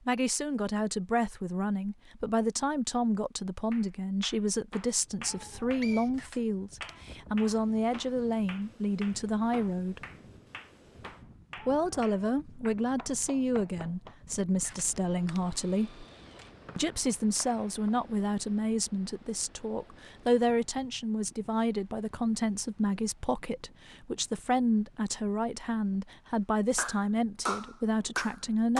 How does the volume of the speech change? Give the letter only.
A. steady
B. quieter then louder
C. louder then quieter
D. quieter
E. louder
A.